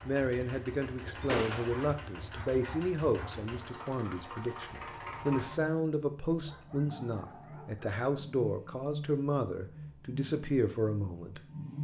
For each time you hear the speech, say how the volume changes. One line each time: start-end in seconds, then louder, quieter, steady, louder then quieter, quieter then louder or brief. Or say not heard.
0.1-11.4 steady.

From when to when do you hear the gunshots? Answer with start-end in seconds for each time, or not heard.
1.2-1.9.